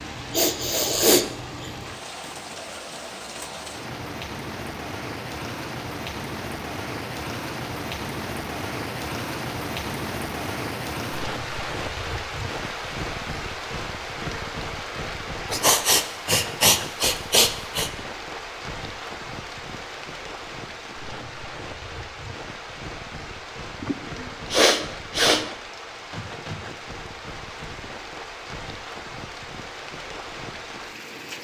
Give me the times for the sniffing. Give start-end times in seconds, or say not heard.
0.3-1.7, 15.5-17.9, 23.8-25.4.